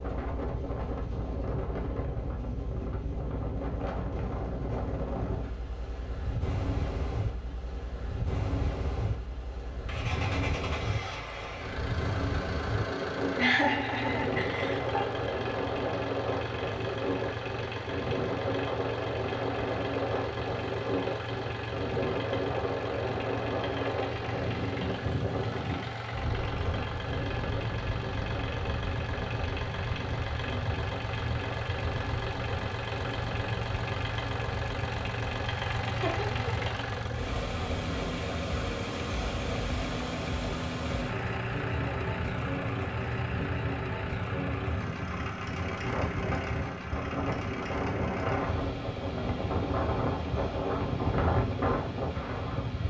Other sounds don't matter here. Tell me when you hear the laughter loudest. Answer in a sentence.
The loudest moment of the laughter is at 14 seconds.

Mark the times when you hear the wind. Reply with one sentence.
You can hear the wind from 0.0 to 52.8 s.